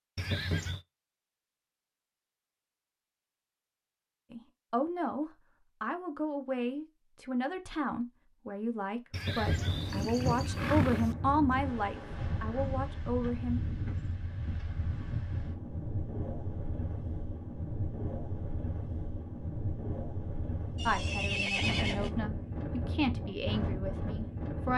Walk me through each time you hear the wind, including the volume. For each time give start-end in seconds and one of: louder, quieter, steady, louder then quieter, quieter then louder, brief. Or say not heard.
9.3-24.7 steady.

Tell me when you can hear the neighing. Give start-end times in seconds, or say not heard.
0.1-0.8, 9.1-11.2, 20.8-22.1.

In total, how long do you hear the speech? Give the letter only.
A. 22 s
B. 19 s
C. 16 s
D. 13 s
D.